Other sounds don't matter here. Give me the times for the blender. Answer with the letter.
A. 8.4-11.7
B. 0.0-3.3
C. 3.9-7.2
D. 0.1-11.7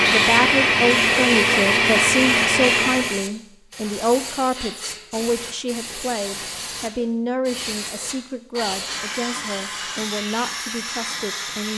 B.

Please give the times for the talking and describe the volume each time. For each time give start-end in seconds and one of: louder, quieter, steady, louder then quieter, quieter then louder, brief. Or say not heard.
0.1-11.7 quieter.